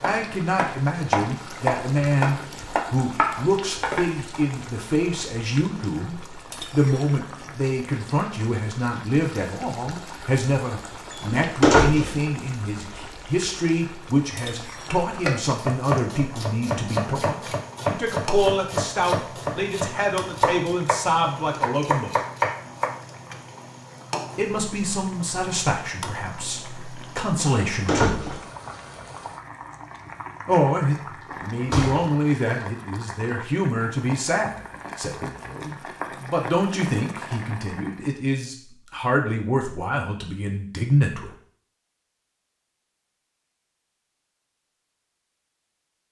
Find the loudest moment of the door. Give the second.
12 s.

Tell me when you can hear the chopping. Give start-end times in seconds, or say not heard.
0.0-4.3, 15.2-22.9.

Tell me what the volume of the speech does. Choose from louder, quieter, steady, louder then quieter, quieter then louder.
steady.